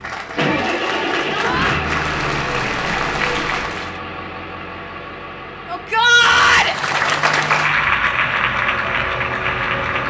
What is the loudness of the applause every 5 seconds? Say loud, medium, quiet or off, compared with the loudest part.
medium, loud.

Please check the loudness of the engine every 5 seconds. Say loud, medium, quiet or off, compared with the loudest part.
loud, medium.